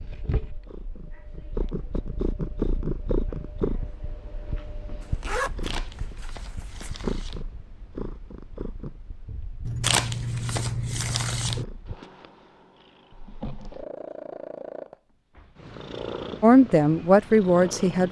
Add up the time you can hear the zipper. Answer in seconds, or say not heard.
4 s.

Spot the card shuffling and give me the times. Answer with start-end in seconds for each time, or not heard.
5.6-7.5, 9.8-11.7.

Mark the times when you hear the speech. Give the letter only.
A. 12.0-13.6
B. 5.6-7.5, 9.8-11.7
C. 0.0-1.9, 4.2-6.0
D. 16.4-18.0
D.